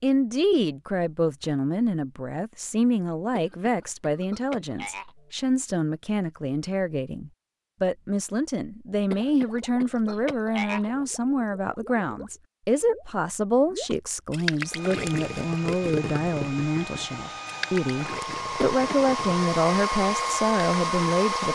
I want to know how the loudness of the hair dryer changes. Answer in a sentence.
The loudness of the hair dryer goes up.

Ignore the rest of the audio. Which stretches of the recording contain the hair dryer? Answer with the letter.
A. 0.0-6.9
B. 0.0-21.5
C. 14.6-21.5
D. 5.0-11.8
C.